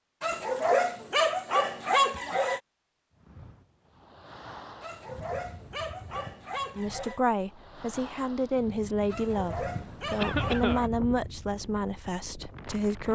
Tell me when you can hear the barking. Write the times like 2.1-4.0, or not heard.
0.2-2.6, 4.8-7.2, 9.1-10.9.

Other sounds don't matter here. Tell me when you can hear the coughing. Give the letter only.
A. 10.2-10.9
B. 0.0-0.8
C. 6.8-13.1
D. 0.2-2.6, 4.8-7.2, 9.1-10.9
A.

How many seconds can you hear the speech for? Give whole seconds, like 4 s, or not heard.
6 s.